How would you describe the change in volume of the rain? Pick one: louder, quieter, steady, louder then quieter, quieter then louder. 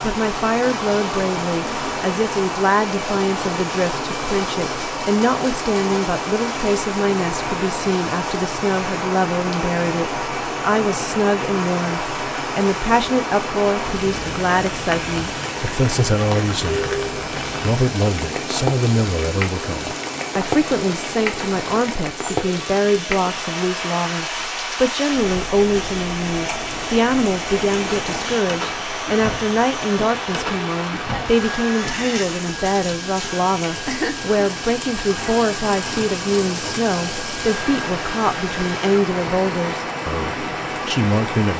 steady.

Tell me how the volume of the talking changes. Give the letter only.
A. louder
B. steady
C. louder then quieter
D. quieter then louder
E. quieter
B.